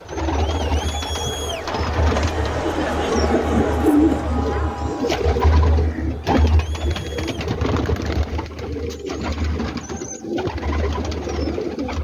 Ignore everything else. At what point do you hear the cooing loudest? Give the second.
4 s.